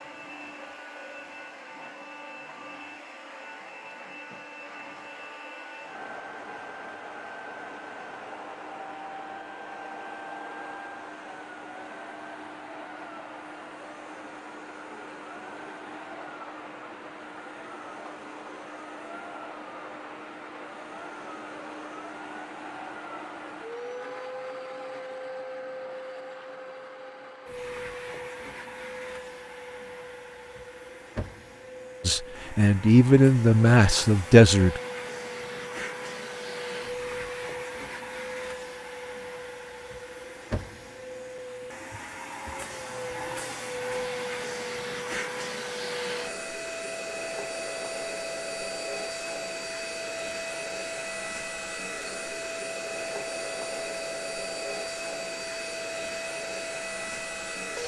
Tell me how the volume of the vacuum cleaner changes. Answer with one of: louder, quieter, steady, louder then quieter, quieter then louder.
louder.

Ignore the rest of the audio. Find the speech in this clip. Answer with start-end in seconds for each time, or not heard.
32.0-34.8.